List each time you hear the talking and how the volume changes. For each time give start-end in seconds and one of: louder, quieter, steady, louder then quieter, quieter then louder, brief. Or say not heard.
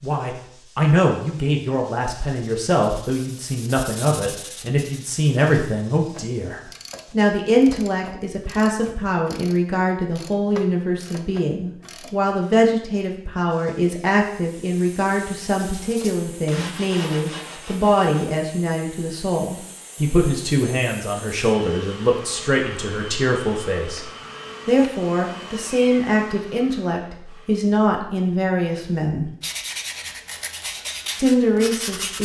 0.0-29.3 steady
31.1-32.2 brief.